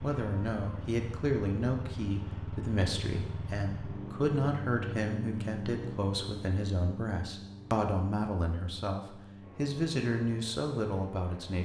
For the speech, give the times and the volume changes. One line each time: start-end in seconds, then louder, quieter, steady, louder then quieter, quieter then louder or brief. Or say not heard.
0.0-11.6 steady.